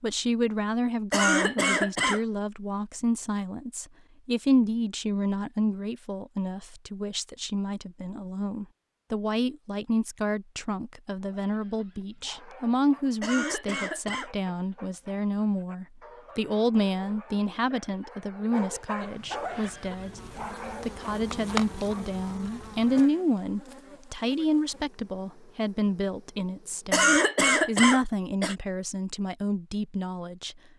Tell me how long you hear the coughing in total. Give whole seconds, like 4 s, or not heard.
4 s.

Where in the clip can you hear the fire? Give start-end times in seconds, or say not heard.
not heard.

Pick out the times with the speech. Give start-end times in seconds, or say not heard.
0.0-20.2, 20.8-30.6.